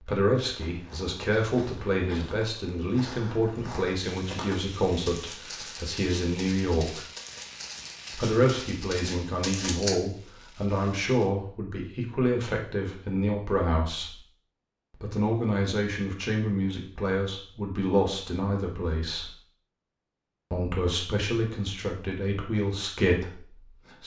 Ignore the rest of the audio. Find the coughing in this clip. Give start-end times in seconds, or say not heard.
not heard.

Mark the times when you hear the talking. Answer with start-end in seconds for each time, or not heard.
0.0-7.0, 8.1-14.2, 14.9-19.4, 20.5-24.0.